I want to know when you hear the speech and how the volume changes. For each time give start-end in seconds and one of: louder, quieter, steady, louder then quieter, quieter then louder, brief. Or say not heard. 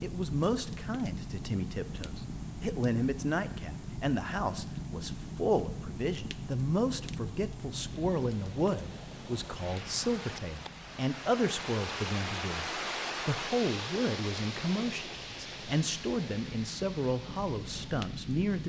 0.0-18.6 steady.